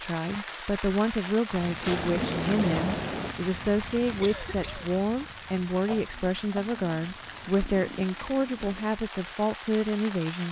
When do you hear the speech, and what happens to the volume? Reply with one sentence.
The speech can be heard from 0.0 to 10.4 s, at a steady volume.